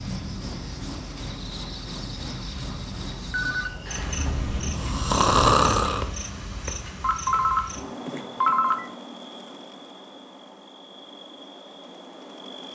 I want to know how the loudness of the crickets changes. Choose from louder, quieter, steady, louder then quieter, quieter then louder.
quieter.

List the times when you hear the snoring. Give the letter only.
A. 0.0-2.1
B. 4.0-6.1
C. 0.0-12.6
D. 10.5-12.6
B.